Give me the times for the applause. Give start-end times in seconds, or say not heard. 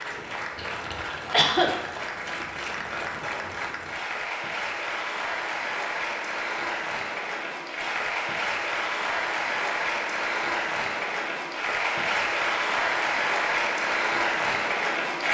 0.0-15.2.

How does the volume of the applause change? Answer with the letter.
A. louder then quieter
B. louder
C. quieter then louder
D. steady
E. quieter
B.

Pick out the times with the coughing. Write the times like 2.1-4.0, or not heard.
0.6-1.7.